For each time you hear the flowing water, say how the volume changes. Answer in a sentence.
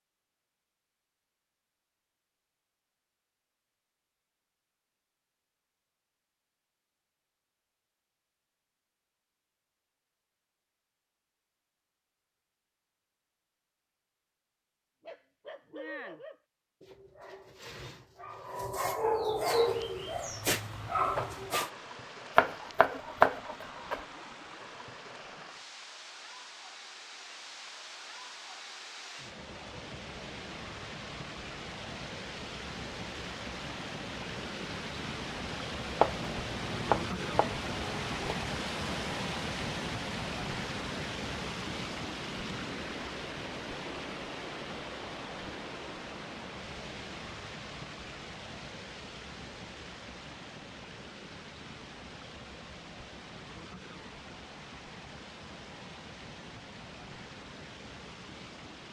The flowing water can be heard from 19.5 to 58.8 s, getting louder then quieter.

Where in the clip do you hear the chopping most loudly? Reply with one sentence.
The loudest moment of the chopping is at 23 seconds.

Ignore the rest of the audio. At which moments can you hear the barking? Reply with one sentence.
You can hear the barking from 15.0 to 21.7 s.